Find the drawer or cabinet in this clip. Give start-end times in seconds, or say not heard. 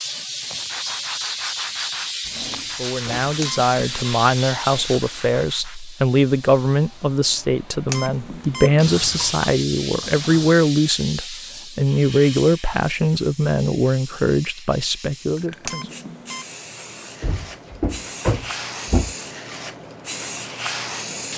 2.2-3.4, 8.7-10.6, 17.2-19.1.